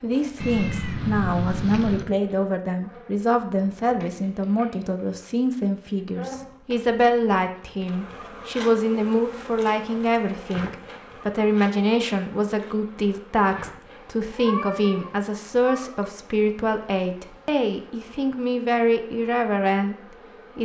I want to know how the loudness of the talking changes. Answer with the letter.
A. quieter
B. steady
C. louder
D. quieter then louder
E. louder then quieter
B.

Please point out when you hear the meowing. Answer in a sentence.
You can hear the meowing from 0.4 to 2.0 s and from 14.3 to 16.1 s.